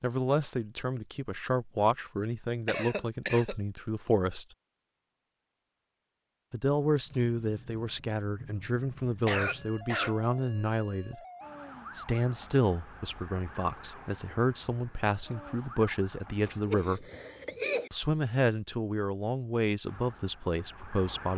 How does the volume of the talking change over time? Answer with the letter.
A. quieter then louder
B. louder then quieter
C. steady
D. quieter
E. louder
C.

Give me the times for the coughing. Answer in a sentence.
The coughing can be heard from 2.6 to 3.5 s, from 9.2 to 10.2 s and from 16.4 to 17.9 s.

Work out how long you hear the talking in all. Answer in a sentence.
You can hear the talking for 18 seconds altogether.